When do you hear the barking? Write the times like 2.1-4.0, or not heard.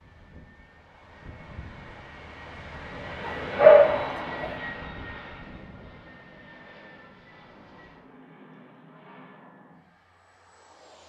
3.2-4.5.